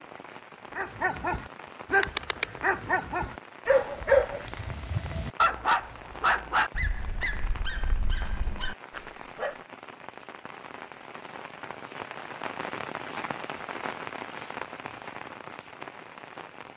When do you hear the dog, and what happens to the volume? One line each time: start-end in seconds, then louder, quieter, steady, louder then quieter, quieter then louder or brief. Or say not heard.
0.8-9.6 quieter.